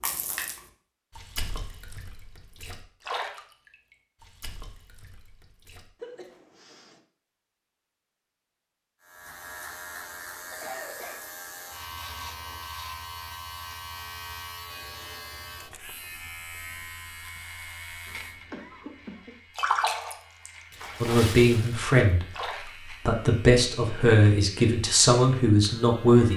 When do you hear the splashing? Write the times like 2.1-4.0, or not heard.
0.0-6.4, 19.6-22.7.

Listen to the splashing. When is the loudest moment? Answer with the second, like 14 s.
20 s.